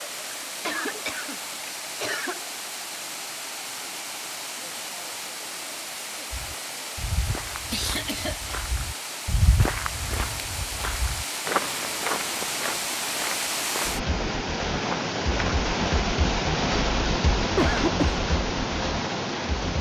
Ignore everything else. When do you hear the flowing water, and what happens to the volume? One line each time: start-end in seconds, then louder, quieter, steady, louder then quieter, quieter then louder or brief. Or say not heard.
0.0-19.7 louder.